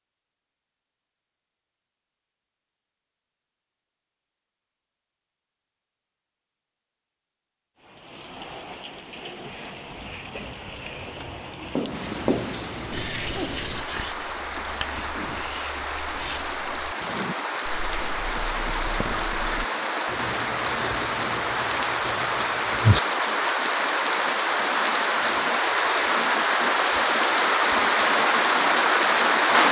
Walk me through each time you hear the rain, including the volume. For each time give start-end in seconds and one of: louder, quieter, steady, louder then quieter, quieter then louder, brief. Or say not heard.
7.8-29.6 louder.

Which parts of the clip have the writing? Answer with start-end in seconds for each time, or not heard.
11.7-23.0.